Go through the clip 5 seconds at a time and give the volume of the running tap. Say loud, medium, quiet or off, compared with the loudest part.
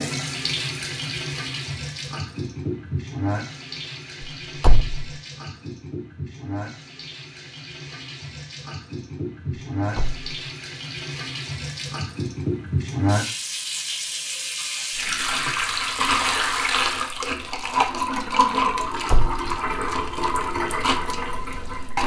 medium, medium, medium, loud, loud.